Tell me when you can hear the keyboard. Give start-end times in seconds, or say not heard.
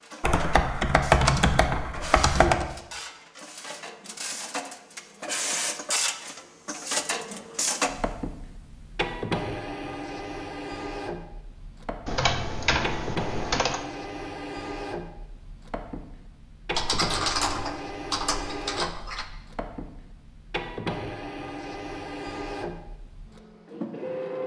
0.2-2.7, 12.1-13.8, 16.7-19.3.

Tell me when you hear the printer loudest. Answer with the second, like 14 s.
7 s.